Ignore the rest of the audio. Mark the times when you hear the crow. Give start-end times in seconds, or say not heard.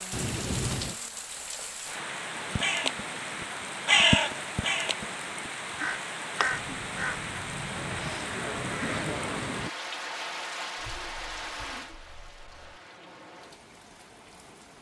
2.4-9.7.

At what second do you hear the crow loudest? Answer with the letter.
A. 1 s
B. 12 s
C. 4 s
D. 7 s
C.